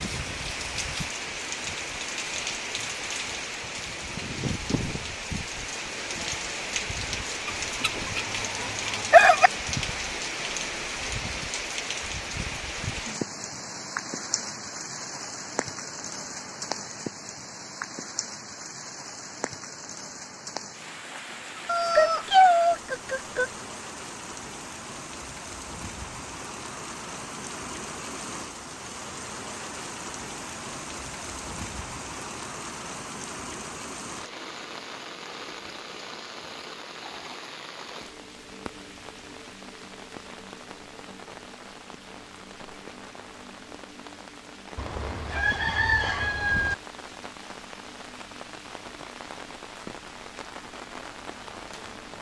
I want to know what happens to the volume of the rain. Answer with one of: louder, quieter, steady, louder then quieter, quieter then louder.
quieter.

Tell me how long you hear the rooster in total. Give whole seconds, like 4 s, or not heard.
6 s.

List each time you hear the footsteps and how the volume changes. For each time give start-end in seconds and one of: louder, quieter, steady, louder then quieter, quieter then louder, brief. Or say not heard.
not heard.